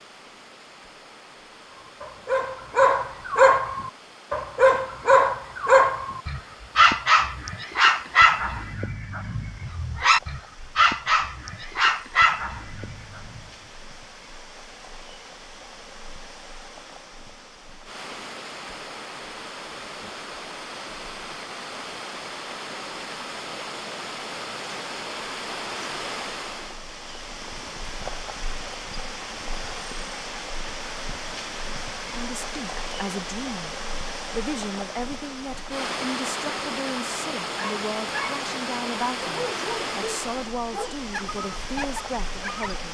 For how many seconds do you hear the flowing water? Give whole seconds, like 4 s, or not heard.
43 s.